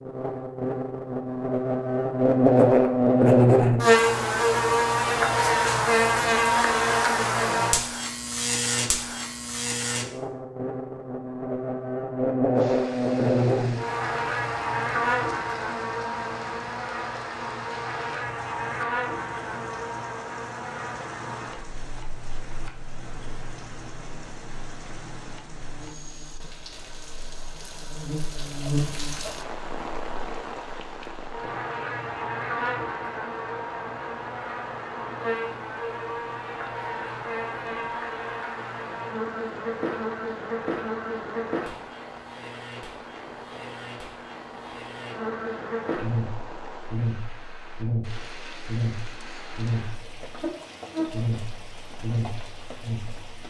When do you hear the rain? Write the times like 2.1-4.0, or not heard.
12.6-53.4.